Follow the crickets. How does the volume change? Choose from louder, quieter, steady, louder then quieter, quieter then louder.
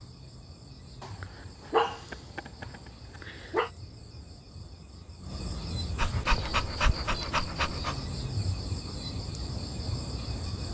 louder.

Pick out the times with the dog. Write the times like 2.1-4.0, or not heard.
1.0-3.7, 6.0-8.1.